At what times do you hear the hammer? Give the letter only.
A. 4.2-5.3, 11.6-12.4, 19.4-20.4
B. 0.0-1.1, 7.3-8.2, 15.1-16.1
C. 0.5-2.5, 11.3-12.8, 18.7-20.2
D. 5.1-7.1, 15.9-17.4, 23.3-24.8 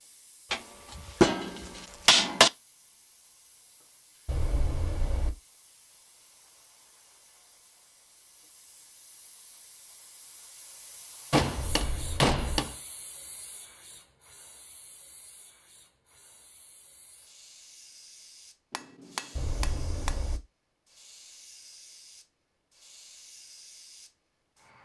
C.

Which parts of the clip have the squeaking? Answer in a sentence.
The squeaking can be heard from 4.2 to 5.3 s, from 11.6 to 12.4 s and from 19.4 to 20.4 s.